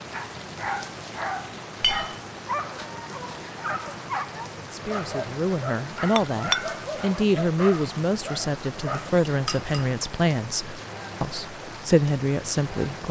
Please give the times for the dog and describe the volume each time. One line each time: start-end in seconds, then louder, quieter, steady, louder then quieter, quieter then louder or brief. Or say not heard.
0.1-9.1 steady.